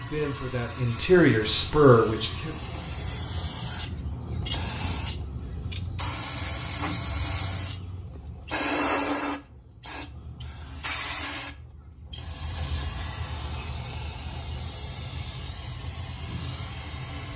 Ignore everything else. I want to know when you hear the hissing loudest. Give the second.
9 s.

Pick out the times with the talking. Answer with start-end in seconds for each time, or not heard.
0.0-2.5.